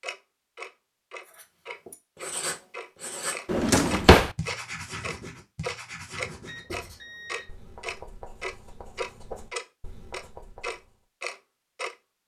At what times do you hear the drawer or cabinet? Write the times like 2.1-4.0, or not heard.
3.5-4.3.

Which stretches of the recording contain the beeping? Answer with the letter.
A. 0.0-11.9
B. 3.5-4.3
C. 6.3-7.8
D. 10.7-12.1
C.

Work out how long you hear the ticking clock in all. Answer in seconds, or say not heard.
12 s.